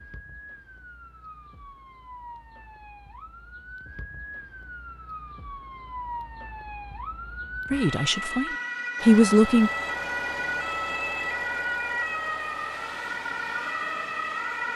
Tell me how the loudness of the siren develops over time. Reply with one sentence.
The loudness of the siren goes up.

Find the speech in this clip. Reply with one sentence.
The speech can be heard from 7.7 to 9.7 s.